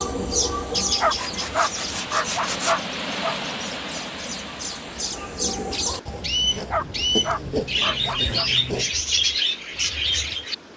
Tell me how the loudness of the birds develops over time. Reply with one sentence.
The loudness of the birds goes down, then up.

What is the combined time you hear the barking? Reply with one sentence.
The barking can be heard for 4 seconds in total.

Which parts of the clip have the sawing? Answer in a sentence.
The sawing can be heard from 1.1 to 2.8 s and from 6.0 to 8.9 s.